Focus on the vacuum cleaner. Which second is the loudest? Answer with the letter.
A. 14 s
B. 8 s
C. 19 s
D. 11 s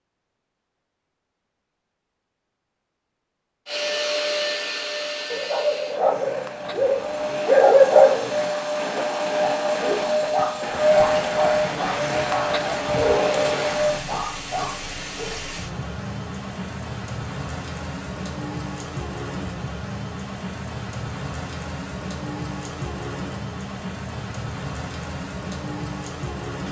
D.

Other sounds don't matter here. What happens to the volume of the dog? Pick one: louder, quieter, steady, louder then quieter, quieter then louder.
louder then quieter.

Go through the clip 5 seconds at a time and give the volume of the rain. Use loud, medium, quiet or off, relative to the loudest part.
off, off, loud, loud, loud, loud.